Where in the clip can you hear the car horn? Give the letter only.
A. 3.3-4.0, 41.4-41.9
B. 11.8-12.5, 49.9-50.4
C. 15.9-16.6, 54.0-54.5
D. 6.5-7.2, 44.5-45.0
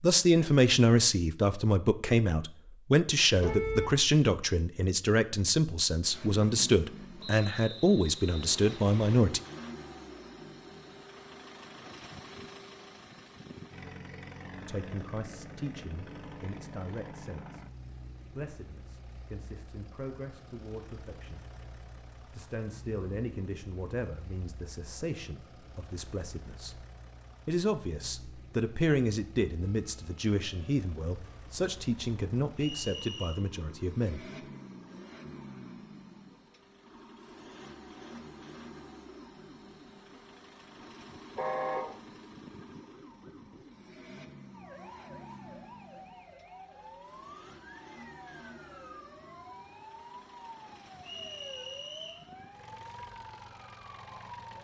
A.